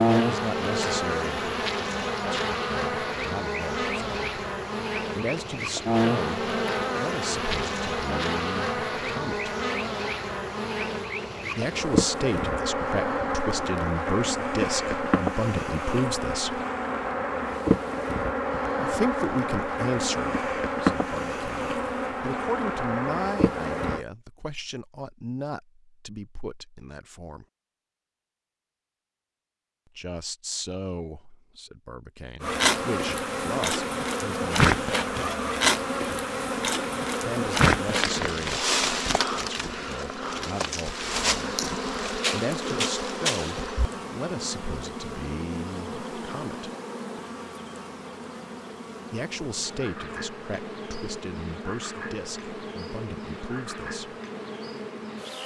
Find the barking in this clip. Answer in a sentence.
You can't hear the barking here.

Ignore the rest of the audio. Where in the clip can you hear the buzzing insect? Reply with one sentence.
The buzzing insect can be heard from 0.0 to 24.1 s and from 32.4 to 55.4 s.